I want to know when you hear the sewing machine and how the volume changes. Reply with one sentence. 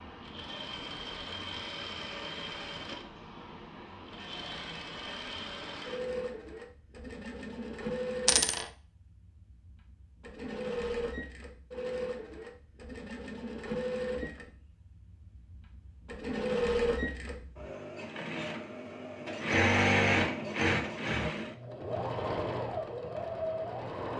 You can hear the sewing machine from 0.0 to 24.1 s, getting louder.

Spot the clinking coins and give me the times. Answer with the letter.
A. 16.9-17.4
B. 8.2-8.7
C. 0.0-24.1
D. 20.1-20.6
B.